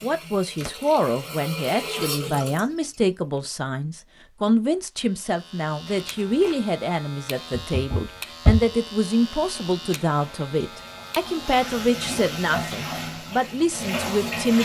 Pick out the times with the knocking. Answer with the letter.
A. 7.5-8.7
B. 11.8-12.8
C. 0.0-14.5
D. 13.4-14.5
A.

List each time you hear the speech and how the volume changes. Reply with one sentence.
The speech can be heard from 0.0 to 14.5 s, at a steady volume.